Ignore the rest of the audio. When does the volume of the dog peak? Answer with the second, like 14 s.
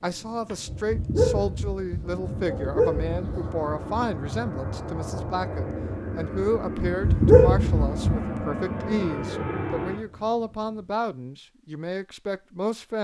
7 s.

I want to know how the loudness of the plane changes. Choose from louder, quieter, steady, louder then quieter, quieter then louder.
louder.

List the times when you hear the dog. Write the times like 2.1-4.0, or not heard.
0.7-3.5, 6.8-8.4.